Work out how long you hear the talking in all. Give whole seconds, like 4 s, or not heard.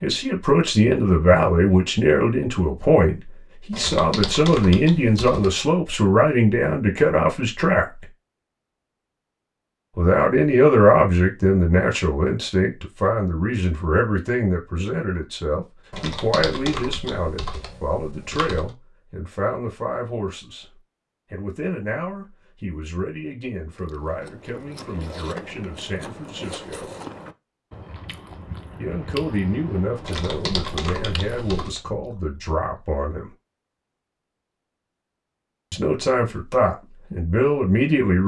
31 s.